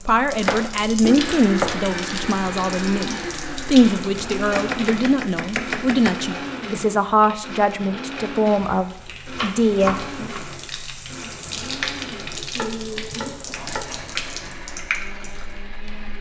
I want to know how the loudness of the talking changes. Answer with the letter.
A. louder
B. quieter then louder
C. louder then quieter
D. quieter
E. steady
E.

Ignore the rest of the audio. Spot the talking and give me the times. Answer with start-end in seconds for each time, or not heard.
0.0-10.3.